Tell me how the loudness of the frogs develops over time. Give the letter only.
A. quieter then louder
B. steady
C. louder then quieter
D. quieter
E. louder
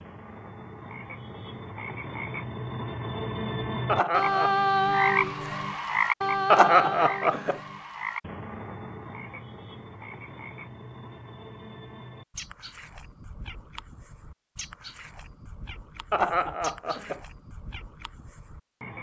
C.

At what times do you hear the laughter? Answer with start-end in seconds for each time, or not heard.
3.9-4.7, 6.5-7.6, 16.1-17.2.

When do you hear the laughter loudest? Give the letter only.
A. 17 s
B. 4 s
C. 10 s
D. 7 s
D.